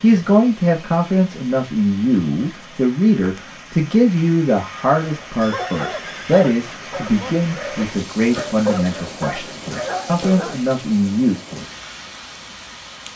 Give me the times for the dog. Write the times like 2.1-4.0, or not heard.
5.0-10.6.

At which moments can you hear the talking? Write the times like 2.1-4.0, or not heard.
0.0-11.4.